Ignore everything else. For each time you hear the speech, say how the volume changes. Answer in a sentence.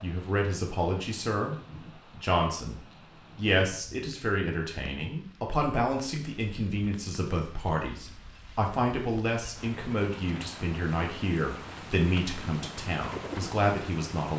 You can hear the speech from 0.0 to 14.3 s, at a steady volume.